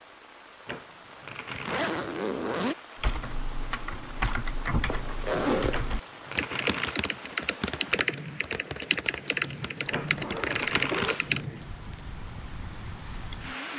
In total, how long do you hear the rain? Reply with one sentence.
The rain can be heard for 14 seconds in total.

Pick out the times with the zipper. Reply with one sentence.
You can hear the zipper from 1.5 to 2.8 s, from 4.8 to 5.8 s and from 9.8 to 11.3 s.